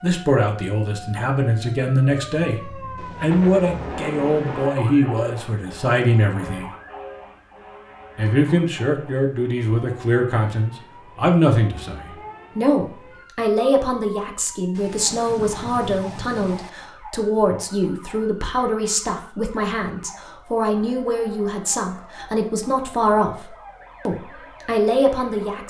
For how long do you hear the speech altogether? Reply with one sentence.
You can hear the speech for 24 seconds altogether.